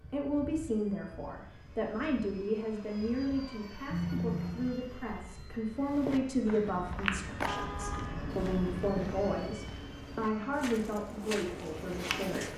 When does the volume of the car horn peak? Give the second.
4 s.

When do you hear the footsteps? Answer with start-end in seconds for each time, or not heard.
5.8-12.5.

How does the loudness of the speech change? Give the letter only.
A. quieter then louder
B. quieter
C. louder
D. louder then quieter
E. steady
E.